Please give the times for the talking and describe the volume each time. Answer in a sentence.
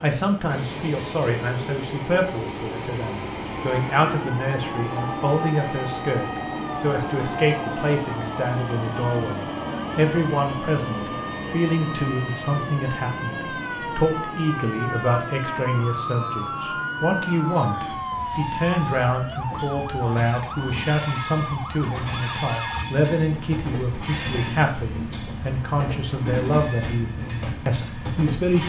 The talking can be heard from 0.0 to 28.6 s, at a steady volume.